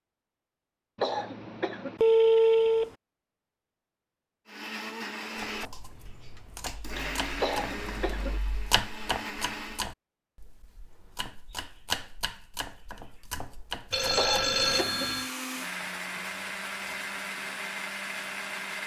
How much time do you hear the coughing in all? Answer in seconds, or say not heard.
3 s.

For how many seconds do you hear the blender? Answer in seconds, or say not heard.
10 s.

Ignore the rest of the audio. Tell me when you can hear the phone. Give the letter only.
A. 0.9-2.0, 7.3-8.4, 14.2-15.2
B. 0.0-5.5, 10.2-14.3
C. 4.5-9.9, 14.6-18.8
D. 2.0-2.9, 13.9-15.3
D.